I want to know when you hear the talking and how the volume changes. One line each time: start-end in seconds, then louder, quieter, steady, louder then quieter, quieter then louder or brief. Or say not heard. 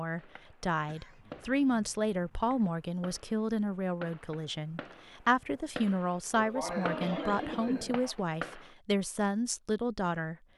0.0-10.3 steady.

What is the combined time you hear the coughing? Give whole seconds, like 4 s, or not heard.
4 s.